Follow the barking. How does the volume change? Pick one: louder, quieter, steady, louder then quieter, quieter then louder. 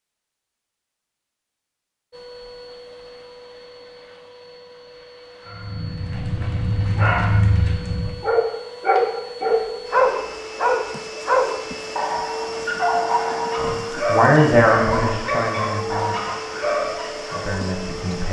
louder then quieter.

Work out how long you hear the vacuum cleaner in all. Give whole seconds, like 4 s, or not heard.
16 s.